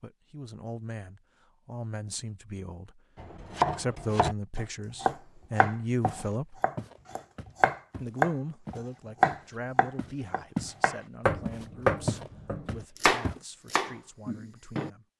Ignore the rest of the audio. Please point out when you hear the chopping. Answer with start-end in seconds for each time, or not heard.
3.1-14.9.